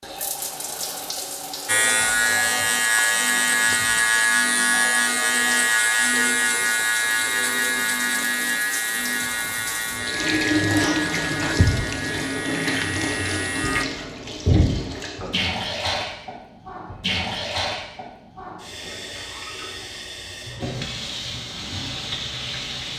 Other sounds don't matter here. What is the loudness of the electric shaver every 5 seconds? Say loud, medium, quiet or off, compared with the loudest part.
loud, loud, medium, off, off.